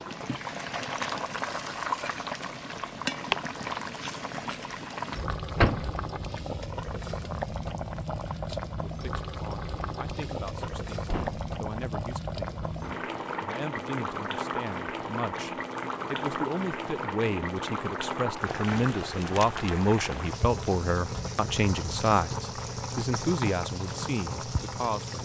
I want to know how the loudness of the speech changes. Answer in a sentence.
The volume of the speech goes up.